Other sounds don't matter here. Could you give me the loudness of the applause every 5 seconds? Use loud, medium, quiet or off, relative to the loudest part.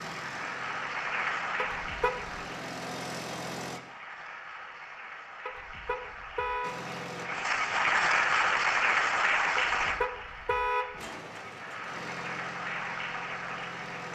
medium, loud, medium.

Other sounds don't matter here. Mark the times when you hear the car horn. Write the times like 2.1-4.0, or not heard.
1.6-2.4, 5.5-6.8, 9.6-11.0.